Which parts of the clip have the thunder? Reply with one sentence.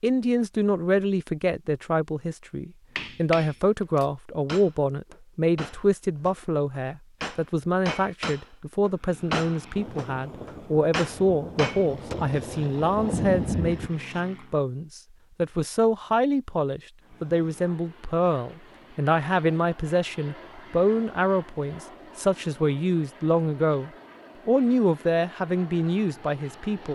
The thunder can be heard from 9.8 to 13.9 s.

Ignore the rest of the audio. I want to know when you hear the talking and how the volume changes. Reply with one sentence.
The talking can be heard from 0.0 to 26.9 s, at a steady volume.